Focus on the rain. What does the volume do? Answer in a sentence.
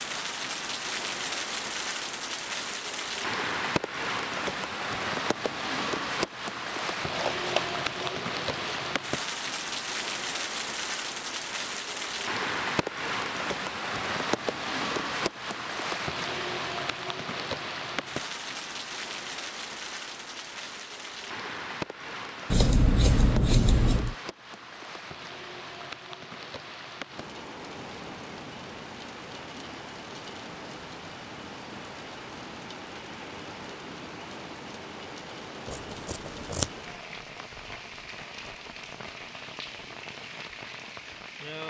The loudness of the rain goes down.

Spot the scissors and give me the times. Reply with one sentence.
The scissors can be heard from 7.0 to 8.9 s, from 22.5 to 24.1 s and from 35.7 to 36.6 s.